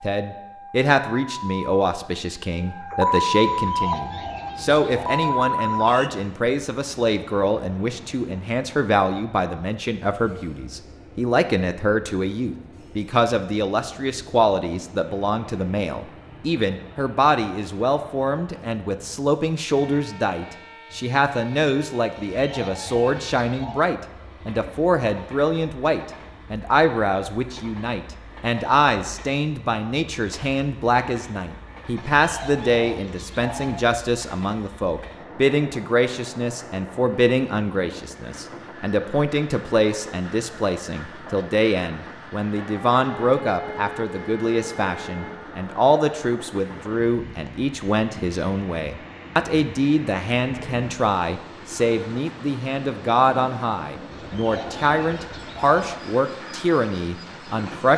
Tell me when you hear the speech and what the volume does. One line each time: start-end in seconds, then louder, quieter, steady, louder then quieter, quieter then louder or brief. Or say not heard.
0.0-57.9 steady.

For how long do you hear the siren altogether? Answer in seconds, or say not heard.
9 s.